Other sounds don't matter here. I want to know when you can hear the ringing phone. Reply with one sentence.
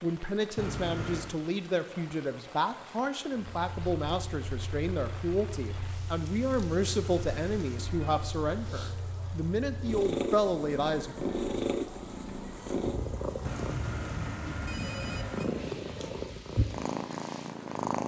The ringing phone can be heard from 0.6 to 1.4 s, from 6.8 to 8.3 s and from 13.4 to 15.4 s.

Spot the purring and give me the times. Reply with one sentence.
The purring can be heard from 3.5 to 18.0 s.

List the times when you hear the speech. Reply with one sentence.
The speech can be heard from 0.0 to 11.2 s.